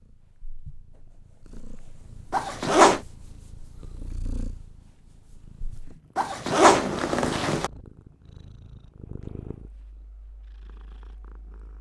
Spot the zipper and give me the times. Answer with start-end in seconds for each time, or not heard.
2.3-3.0, 6.2-7.7.